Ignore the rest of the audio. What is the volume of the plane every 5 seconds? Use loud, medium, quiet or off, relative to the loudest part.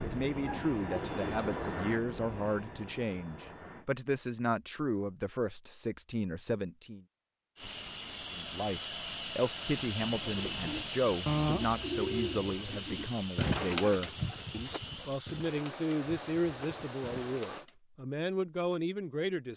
loud, loud, loud, medium.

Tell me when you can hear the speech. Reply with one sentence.
You can hear the speech from 0.0 to 7.0 s and from 8.3 to 19.5 s.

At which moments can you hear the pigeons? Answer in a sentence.
You can hear the pigeons from 0.0 to 1.9 s and from 10.1 to 17.8 s.